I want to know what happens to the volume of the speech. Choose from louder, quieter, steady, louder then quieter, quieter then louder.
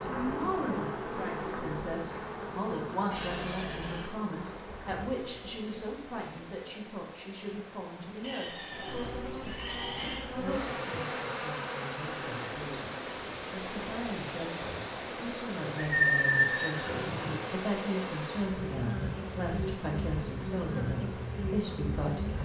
quieter then louder.